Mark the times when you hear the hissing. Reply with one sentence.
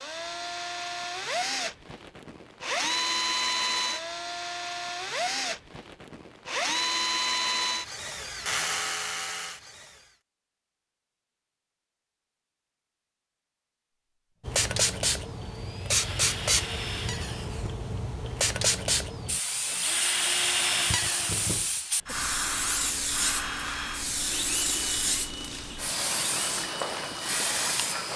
The hissing can be heard from 14.4 to 28.1 s.